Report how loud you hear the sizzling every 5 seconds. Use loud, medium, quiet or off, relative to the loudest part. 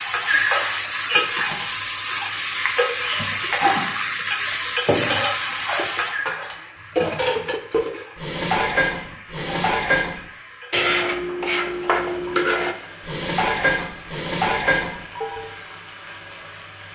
loud, medium, quiet, quiet.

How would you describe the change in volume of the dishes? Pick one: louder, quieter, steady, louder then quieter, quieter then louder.
steady.